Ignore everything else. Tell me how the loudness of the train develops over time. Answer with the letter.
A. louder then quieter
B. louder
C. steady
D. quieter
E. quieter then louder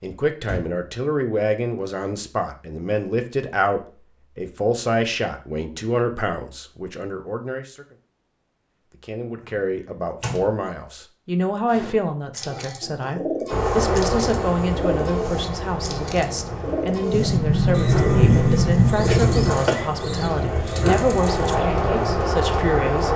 E.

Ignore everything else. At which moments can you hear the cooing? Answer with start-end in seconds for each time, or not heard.
11.7-21.6.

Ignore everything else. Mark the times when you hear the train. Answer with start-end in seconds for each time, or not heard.
13.4-23.1.